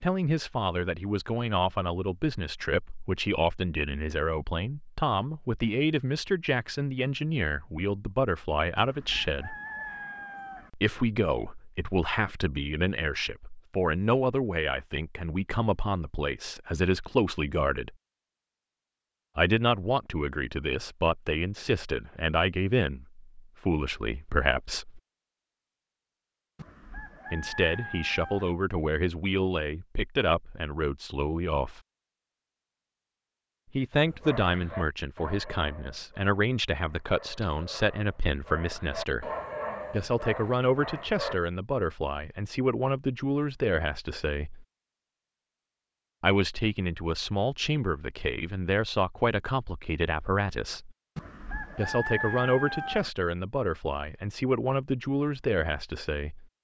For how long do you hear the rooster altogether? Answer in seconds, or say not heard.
6 s.